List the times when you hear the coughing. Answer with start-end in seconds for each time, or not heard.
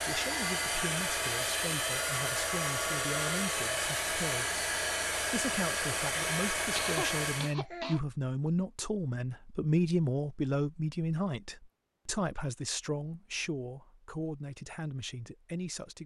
6.8-8.0.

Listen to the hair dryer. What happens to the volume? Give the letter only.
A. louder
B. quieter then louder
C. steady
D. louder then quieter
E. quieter
C.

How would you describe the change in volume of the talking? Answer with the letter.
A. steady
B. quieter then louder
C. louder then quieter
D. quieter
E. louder
C.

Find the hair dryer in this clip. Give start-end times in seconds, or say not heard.
0.0-7.5.